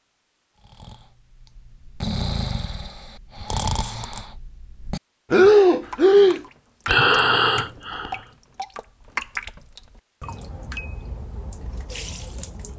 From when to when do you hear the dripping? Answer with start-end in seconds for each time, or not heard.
5.9-12.7.